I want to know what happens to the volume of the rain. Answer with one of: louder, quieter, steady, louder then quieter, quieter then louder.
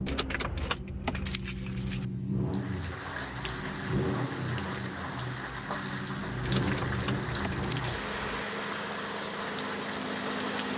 steady.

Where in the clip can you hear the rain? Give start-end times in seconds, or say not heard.
2.5-10.7.